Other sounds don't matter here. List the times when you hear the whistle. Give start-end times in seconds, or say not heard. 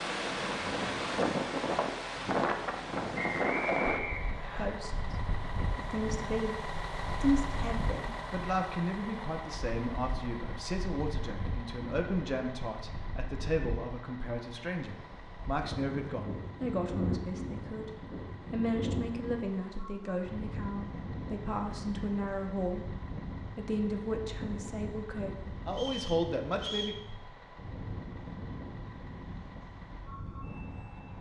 3.1-4.7, 25.7-27.0.